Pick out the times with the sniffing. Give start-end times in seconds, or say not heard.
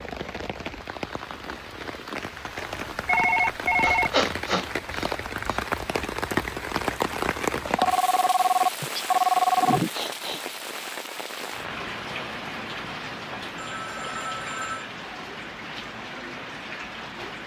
3.8-5.6, 8.8-10.4.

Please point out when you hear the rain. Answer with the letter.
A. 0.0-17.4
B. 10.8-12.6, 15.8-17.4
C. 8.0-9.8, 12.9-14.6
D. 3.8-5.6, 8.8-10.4
A.